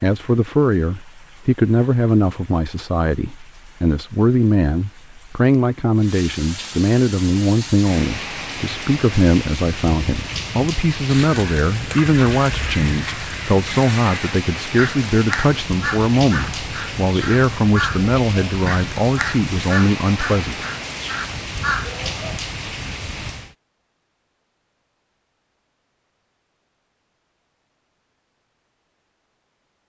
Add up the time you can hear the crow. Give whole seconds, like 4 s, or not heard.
12 s.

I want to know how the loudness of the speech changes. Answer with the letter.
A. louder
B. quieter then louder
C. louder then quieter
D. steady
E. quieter
D.